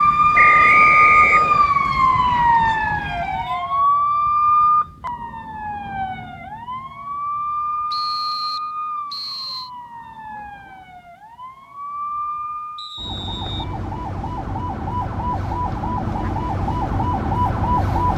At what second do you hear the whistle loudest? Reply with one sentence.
The volume of the whistle peaks at 1 second.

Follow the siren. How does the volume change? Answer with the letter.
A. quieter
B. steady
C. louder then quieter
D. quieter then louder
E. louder
D.